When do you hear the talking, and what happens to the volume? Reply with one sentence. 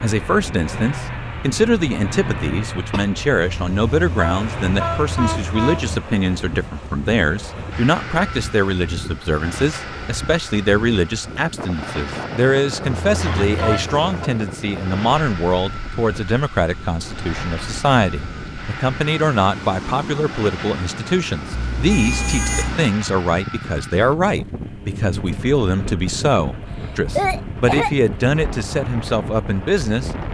The talking can be heard from 0.0 to 30.1 s, at a steady volume.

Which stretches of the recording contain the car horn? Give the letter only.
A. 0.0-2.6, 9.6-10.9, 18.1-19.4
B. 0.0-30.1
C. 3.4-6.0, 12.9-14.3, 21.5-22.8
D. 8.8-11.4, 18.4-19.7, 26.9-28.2
C.